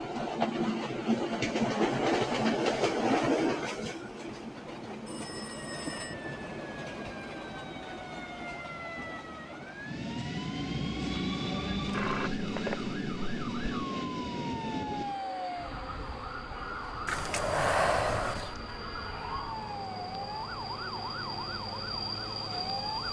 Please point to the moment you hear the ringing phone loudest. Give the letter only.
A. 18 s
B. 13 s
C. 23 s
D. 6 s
A.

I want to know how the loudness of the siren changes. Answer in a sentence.
The loudness of the siren goes up.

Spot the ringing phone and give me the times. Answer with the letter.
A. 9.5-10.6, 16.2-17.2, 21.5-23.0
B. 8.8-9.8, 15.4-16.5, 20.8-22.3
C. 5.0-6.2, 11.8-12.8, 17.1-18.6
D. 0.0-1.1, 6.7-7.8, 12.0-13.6
C.